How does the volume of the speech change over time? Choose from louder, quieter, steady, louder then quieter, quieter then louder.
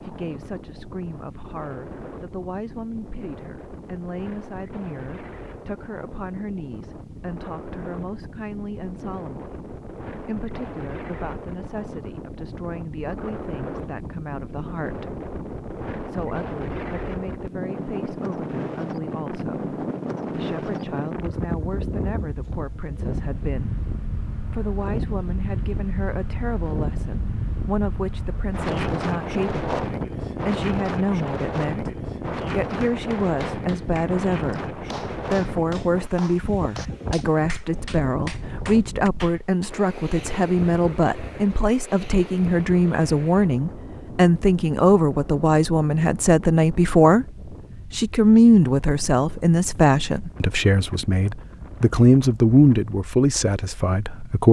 louder.